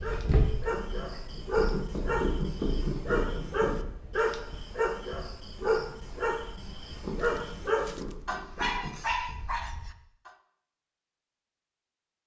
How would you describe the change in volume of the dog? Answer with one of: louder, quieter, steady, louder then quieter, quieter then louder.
steady.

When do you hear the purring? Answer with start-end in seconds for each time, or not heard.
0.0-9.8.